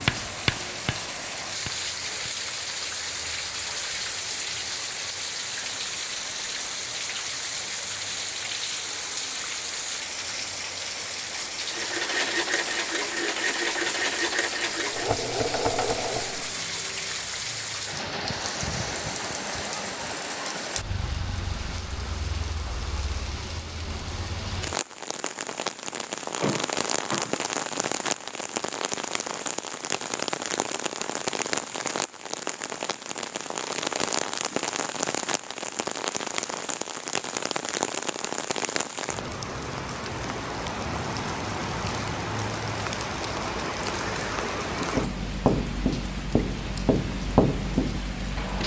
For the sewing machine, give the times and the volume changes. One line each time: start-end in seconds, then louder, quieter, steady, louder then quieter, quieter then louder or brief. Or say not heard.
11.6-16.5 steady.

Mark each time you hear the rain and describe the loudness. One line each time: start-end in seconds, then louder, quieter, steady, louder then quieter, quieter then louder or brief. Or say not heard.
0.0-48.6 steady.